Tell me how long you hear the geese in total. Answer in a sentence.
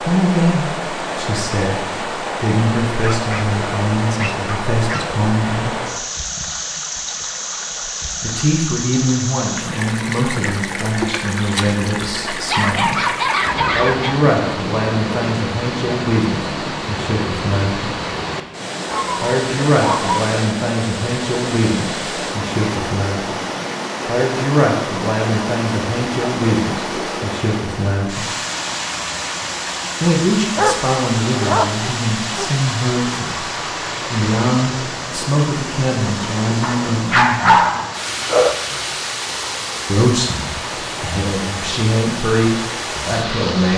The geese can't be heard in this clip.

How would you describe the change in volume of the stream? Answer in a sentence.
The volume of the stream stays about the same.